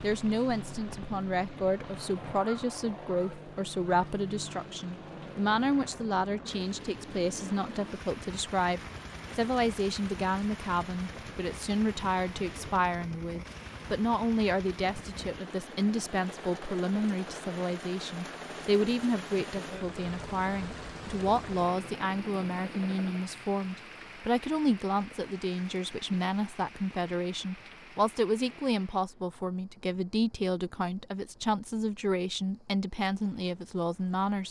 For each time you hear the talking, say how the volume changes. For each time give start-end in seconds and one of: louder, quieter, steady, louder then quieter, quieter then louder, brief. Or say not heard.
0.0-34.4 steady.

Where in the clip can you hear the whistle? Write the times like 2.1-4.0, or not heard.
not heard.